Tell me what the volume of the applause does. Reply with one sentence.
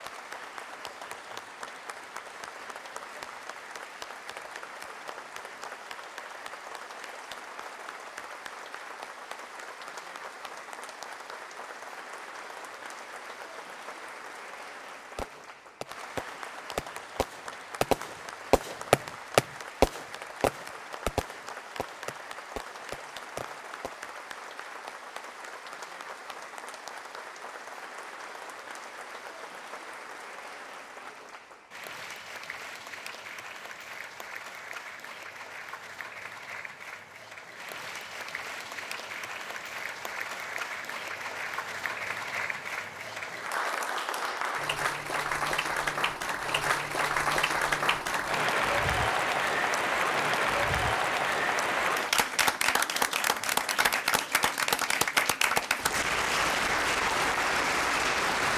The volume of the applause goes up.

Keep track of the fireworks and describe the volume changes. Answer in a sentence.
The loudness of the fireworks goes up, then down.